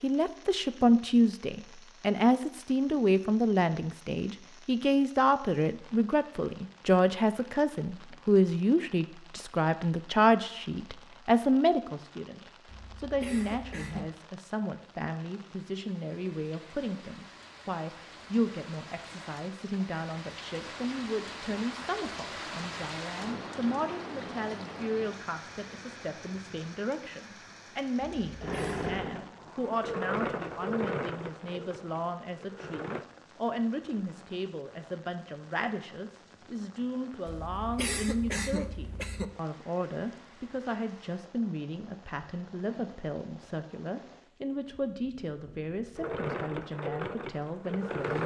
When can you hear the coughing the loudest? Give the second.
38 s.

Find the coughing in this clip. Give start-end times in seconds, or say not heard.
12.7-14.1, 28.0-28.9, 37.2-39.2.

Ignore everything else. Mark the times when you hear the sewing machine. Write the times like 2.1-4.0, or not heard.
28.4-33.0, 46.0-48.2.